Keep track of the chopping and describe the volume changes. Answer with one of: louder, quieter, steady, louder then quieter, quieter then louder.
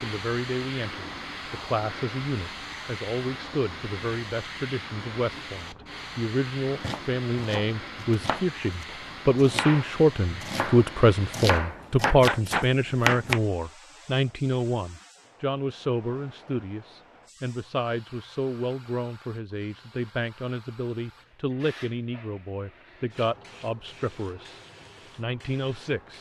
louder.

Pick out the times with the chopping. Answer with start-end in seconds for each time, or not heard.
6.8-13.4.